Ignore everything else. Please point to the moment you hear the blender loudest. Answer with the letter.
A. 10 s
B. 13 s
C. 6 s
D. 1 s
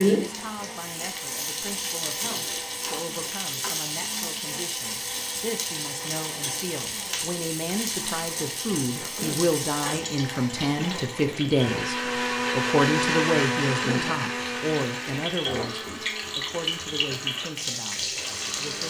B.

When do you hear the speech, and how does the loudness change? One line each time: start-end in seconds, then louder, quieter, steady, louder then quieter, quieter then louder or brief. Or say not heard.
0.0-18.8 louder then quieter.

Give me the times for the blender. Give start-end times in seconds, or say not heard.
0.0-18.8.